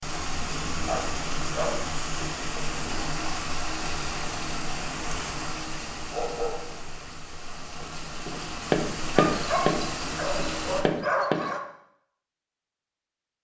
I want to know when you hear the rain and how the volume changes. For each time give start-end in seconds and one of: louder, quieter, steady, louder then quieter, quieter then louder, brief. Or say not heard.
0.0-10.8 quieter then louder.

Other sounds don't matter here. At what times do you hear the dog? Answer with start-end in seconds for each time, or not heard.
0.8-1.8, 6.1-7.1, 9.2-11.6.